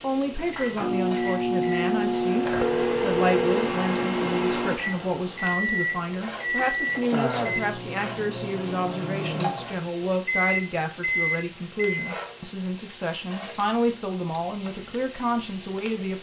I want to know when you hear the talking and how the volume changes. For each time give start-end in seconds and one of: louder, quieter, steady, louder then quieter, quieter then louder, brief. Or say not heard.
0.0-16.1 steady.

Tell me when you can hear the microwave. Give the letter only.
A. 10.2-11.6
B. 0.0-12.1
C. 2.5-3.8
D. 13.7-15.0
B.